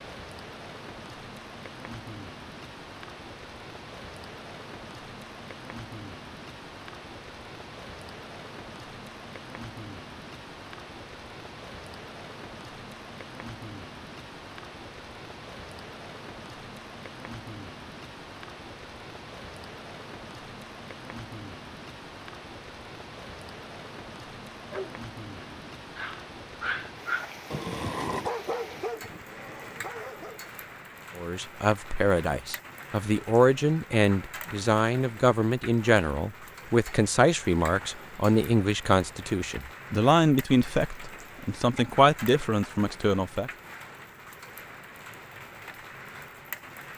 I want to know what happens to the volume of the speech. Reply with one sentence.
The volume of the speech stays about the same.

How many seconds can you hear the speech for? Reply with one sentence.
You can hear the speech for 12 seconds altogether.